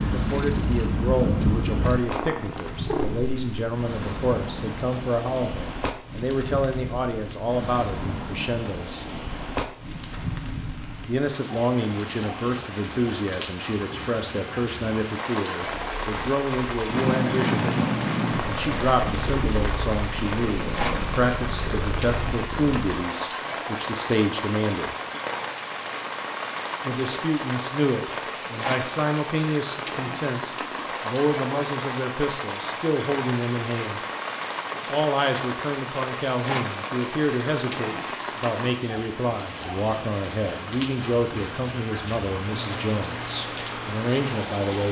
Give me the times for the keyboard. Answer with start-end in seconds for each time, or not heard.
not heard.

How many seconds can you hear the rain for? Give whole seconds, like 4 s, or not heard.
45 s.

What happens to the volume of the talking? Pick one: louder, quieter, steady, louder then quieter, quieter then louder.
steady.